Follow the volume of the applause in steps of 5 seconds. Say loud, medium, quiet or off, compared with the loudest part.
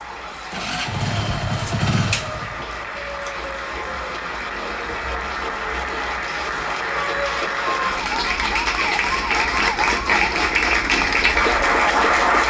quiet, medium, loud.